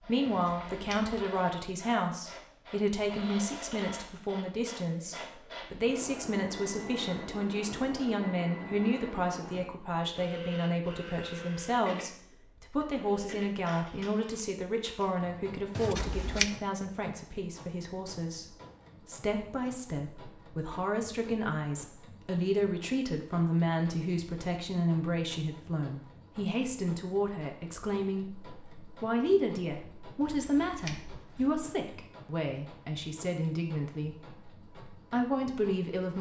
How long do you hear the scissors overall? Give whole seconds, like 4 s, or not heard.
3 s.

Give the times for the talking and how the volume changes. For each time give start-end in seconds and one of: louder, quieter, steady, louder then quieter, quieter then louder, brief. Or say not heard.
0.0-36.1 steady.